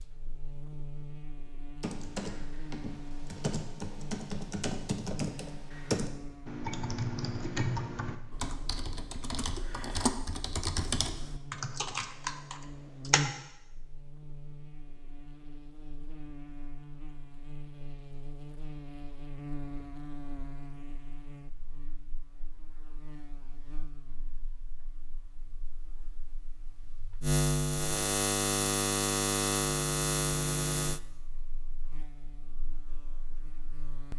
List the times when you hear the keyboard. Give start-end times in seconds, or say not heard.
1.8-13.2.